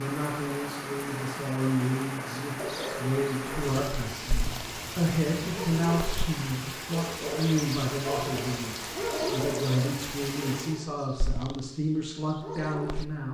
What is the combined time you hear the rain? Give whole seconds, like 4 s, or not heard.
11 s.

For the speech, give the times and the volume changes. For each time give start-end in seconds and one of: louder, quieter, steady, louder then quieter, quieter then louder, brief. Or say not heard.
0.0-13.2 steady.